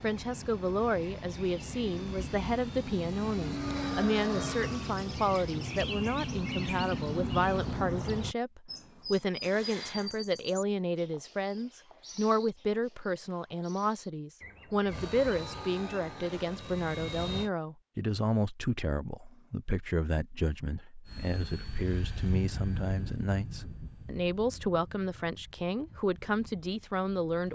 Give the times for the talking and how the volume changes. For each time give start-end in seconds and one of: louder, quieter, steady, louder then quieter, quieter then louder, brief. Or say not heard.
0.0-27.5 steady.